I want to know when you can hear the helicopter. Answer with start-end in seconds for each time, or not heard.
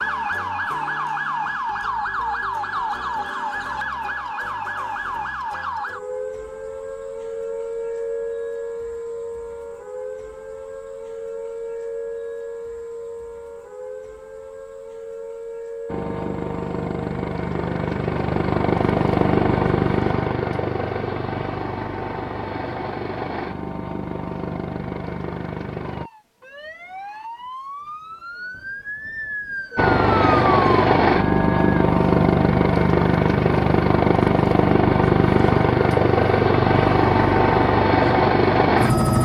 15.8-26.1, 29.8-39.2.